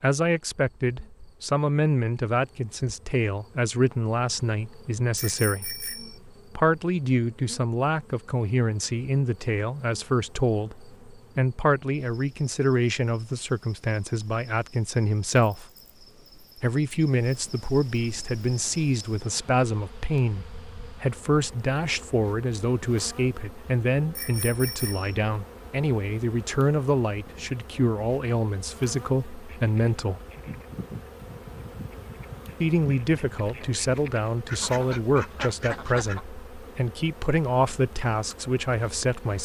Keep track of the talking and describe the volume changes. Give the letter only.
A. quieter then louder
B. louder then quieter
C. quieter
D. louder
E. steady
E.